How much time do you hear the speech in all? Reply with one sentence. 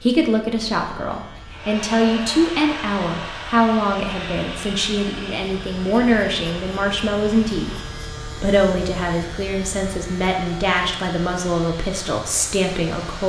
You can hear the speech for 13 seconds altogether.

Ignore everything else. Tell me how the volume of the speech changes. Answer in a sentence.
The volume of the speech stays about the same.